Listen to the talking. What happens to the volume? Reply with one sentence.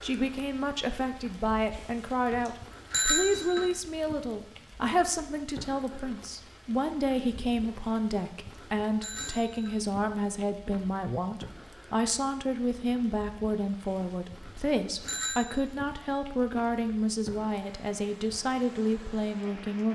The volume of the talking stays about the same.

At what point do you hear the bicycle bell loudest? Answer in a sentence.
The volume of the bicycle bell peaks at 3 seconds.